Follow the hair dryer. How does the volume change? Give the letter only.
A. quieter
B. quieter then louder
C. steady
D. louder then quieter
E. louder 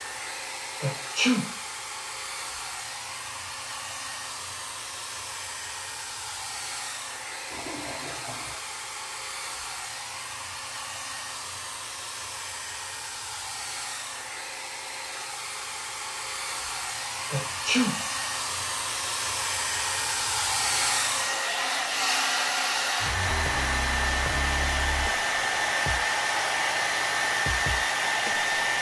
E.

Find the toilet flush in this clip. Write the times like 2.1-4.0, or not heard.
7.5-8.6.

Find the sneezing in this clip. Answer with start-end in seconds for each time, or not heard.
0.8-1.4, 17.3-17.9.